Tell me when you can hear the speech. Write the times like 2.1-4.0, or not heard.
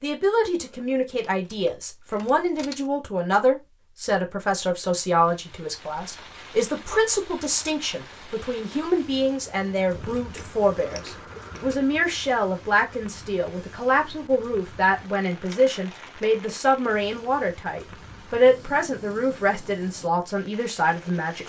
0.0-21.4.